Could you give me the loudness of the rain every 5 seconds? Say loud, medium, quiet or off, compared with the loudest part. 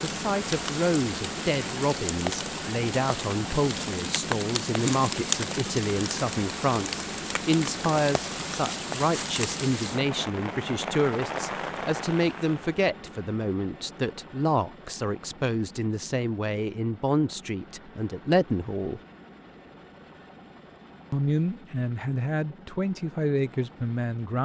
loud, loud, loud, off, off.